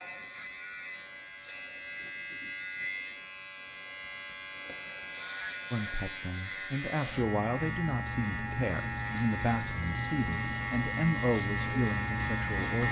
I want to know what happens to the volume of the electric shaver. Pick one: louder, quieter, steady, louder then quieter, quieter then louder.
louder.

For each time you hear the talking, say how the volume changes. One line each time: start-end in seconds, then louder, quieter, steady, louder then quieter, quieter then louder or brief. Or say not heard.
5.7-12.8 steady.